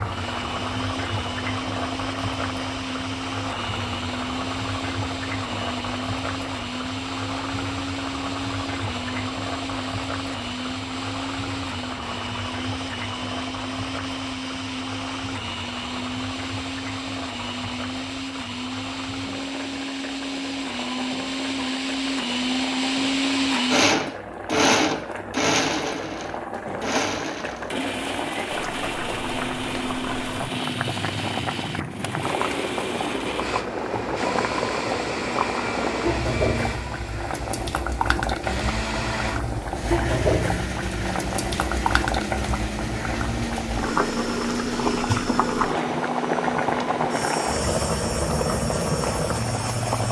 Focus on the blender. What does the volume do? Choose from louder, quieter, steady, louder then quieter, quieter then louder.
louder then quieter.